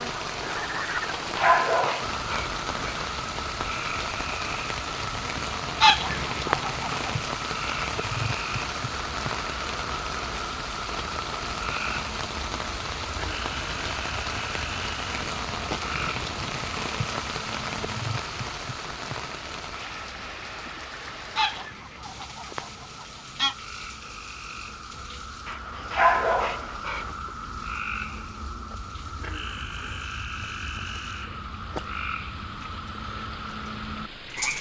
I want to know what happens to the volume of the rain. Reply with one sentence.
The loudness of the rain goes down.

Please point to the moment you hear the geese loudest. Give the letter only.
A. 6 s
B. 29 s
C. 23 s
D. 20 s
A.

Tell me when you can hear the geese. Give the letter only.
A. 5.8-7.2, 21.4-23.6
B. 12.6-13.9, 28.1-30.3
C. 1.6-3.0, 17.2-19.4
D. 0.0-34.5
A.